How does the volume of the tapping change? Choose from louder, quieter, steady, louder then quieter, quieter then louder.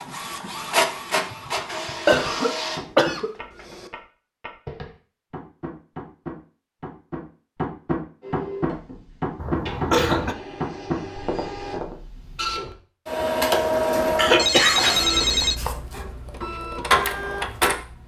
louder.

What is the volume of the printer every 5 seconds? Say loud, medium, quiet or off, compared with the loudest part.
loud, medium, loud, loud.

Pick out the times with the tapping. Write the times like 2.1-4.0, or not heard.
1.2-11.9.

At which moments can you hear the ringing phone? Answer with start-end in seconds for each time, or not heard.
13.9-15.6.